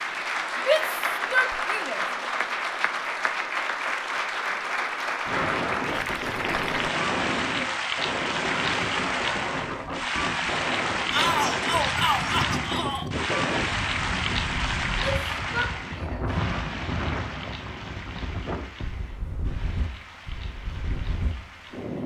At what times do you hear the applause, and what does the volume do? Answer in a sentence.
You can hear the applause from 0.0 to 22.0 s, getting quieter.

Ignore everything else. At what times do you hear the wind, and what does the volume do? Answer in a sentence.
You can hear the wind from 5.2 to 22.0 s, getting quieter.